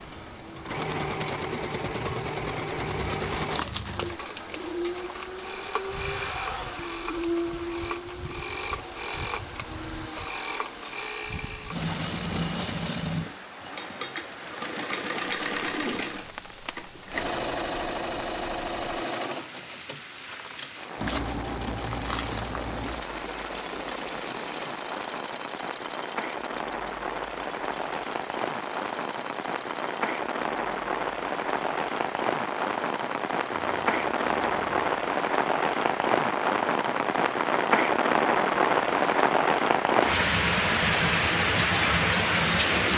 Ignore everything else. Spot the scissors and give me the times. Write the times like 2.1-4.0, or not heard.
not heard.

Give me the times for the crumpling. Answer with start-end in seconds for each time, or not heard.
2.9-4.2, 21.0-23.0, 33.5-34.9.